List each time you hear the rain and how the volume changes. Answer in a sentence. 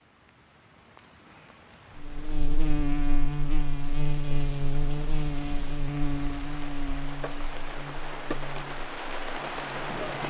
You can hear the rain from 0.0 to 10.2 s, getting louder.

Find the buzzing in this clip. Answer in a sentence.
You can hear the buzzing from 1.9 to 10.2 s.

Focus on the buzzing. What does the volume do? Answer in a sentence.
The volume of the buzzing goes down.